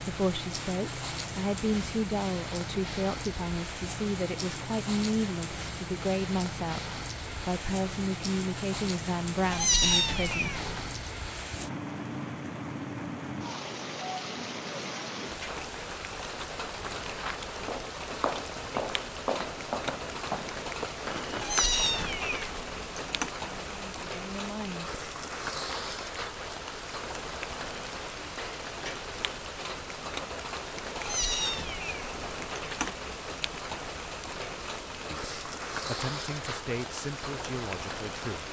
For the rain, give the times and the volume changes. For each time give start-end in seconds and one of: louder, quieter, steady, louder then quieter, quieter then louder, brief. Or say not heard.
0.0-38.4 steady.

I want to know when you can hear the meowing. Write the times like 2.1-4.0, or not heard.
9.5-11.0, 21.4-23.3, 31.0-33.0.